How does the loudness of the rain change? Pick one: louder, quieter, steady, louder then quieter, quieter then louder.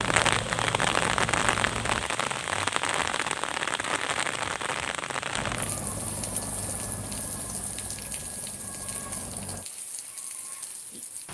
quieter.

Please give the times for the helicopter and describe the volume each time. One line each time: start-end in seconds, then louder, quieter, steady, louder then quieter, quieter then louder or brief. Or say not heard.
0.0-2.1 brief
5.3-9.7 quieter.